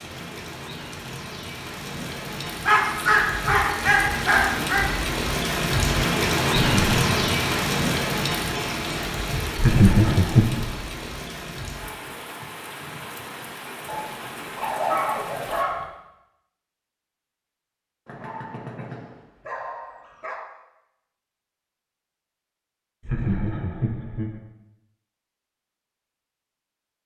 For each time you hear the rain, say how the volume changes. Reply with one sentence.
You can hear the rain from 0.0 to 15.7 s, getting louder then quieter.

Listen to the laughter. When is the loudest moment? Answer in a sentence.
The loudest moment of the laughter is at 10 seconds.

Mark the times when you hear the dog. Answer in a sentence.
The dog can be heard from 2.6 to 4.8 s, from 13.8 to 15.8 s and from 18.1 to 20.4 s.